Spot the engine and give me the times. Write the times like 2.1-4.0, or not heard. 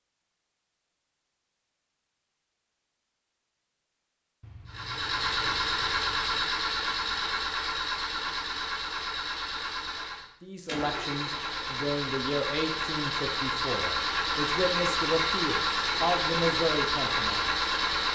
4.7-18.0.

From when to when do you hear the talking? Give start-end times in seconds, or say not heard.
10.4-17.5.